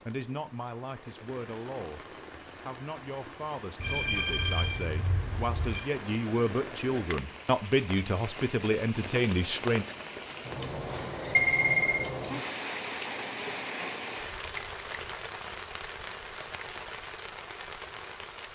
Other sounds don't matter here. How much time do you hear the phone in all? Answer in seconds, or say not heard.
3 s.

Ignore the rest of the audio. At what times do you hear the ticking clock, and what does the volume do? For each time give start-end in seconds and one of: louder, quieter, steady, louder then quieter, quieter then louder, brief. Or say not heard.
not heard.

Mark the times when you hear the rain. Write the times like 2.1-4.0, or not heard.
0.0-18.4.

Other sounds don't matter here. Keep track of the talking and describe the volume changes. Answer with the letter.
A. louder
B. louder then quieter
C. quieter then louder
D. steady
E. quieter
A.